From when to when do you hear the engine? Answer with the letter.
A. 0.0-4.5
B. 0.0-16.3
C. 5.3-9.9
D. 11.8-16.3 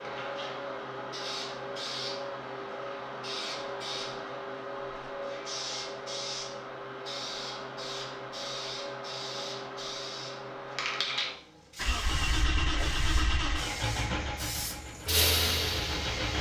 D.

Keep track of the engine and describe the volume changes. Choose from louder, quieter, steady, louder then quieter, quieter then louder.
quieter.